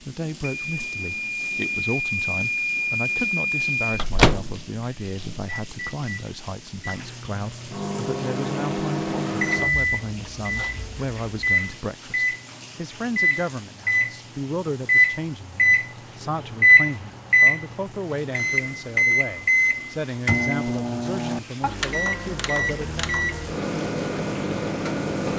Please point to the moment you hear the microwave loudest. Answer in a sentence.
The loudest moment of the microwave is at 17 seconds.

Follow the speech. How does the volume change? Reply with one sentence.
The loudness of the speech stays about the same.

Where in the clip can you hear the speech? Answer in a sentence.
The speech can be heard from 0.0 to 23.1 s.